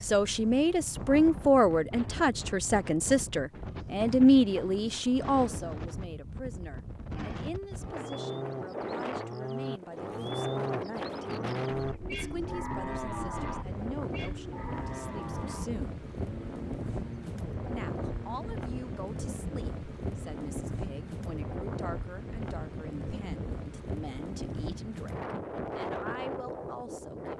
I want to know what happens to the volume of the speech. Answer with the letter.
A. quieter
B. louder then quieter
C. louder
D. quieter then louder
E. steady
A.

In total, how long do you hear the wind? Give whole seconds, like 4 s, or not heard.
27 s.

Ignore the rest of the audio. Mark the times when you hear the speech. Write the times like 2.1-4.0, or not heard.
0.0-11.2, 12.1-16.0, 17.7-27.3.